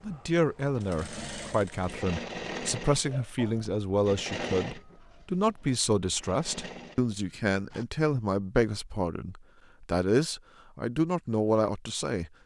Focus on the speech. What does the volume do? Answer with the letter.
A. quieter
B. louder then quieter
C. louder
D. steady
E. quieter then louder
D.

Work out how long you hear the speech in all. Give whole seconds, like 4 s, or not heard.
12 s.